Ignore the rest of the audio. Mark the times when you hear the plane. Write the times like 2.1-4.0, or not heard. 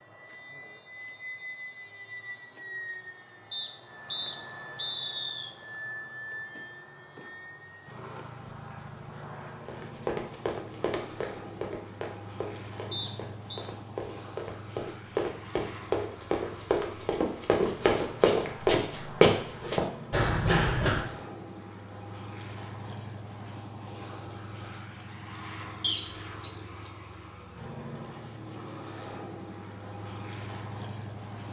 0.0-31.4.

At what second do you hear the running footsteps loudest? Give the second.
19 s.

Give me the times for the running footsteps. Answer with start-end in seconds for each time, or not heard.
9.7-21.1.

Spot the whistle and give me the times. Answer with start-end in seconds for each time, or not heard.
3.5-5.5, 12.9-13.7, 25.8-26.5.